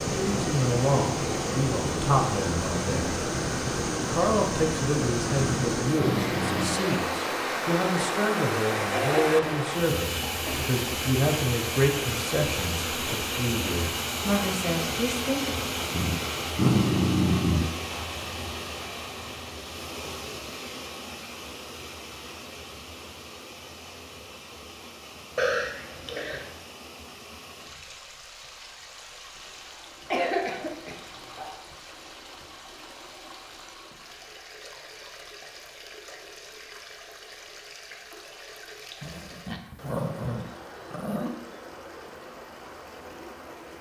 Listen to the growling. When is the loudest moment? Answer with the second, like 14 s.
17 s.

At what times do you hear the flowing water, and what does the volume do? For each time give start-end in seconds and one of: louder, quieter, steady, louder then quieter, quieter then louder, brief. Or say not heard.
0.0-43.7 quieter.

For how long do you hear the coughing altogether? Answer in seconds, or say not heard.
4 s.